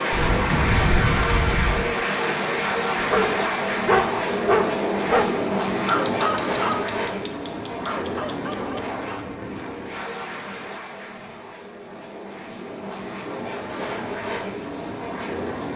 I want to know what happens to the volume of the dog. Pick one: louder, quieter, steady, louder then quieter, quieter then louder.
quieter.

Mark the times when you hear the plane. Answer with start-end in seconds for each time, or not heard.
0.0-15.7.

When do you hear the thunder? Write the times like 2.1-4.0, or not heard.
0.1-1.9.